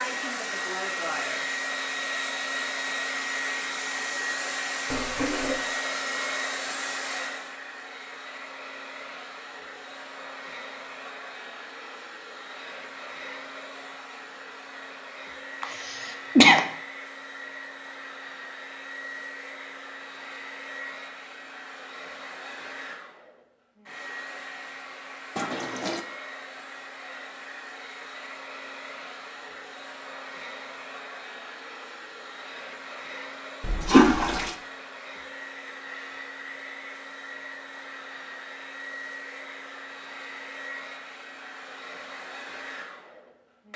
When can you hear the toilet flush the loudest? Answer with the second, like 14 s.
34 s.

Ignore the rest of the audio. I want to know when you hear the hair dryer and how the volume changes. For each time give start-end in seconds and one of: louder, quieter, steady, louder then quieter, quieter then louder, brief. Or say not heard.
0.0-43.7 quieter.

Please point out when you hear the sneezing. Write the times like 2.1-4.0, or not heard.
15.6-16.6.